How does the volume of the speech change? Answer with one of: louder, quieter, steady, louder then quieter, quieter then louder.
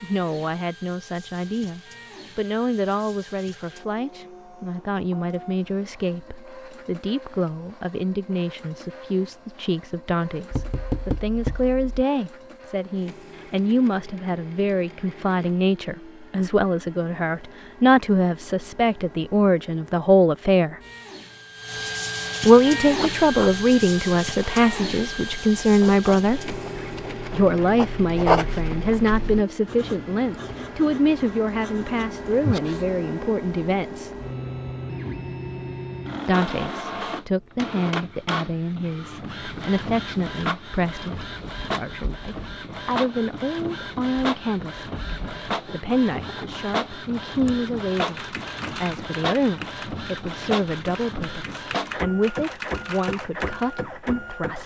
louder then quieter.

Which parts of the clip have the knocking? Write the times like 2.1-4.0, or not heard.
10.5-12.1.